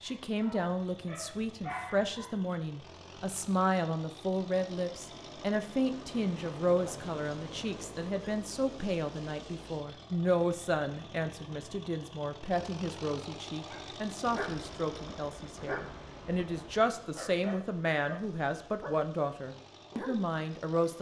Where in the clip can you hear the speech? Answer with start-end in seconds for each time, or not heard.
0.0-20.9.